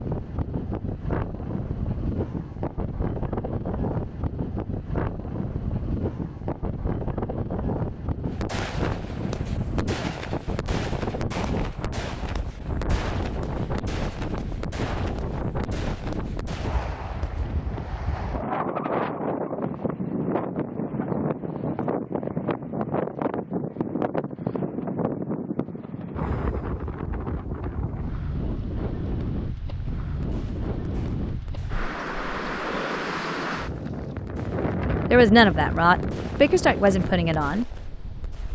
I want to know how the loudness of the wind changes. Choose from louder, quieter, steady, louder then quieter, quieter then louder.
steady.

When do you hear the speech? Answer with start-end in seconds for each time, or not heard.
35.1-37.6.